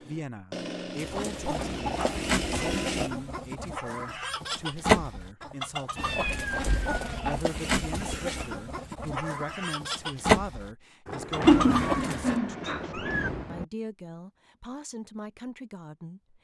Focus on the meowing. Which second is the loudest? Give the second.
12 s.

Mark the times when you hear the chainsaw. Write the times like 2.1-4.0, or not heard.
0.0-3.1.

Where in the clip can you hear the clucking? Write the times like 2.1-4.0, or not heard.
0.9-12.3.